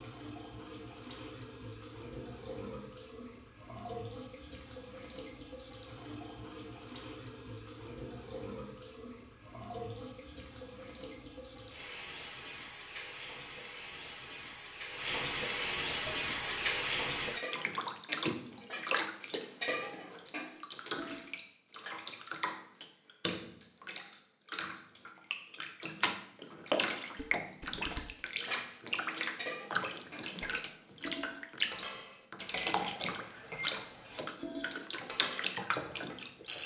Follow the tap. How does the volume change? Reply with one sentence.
The loudness of the tap goes up.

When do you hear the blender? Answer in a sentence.
You can't hear the blender here.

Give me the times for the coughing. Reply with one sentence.
You can't hear the coughing here.